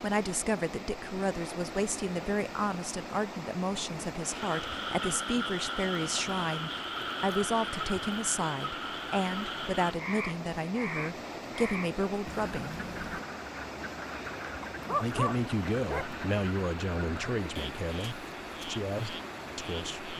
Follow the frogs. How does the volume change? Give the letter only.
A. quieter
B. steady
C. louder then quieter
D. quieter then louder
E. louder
A.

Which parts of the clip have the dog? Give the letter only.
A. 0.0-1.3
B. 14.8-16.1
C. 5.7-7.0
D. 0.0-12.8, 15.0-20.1
B.